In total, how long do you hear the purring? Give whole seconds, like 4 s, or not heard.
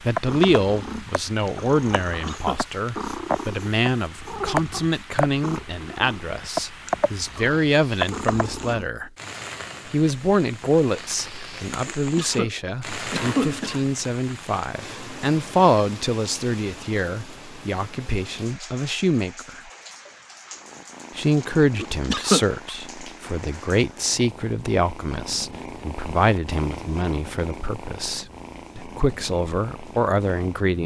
19 s.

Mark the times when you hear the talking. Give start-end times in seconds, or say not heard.
0.0-9.1, 9.9-19.6, 21.1-30.8.